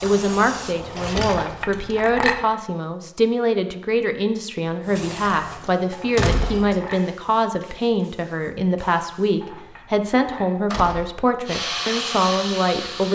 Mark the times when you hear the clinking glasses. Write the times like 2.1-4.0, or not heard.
1.2-2.5, 5.9-7.0, 9.4-10.5.